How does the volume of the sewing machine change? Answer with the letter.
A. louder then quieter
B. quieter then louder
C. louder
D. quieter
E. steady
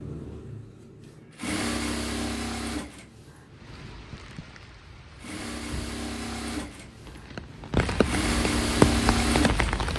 B.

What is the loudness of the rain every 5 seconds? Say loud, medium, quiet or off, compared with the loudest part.
quiet, loud.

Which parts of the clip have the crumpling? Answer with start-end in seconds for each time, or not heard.
4.0-4.7.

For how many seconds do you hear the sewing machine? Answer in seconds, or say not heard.
10 s.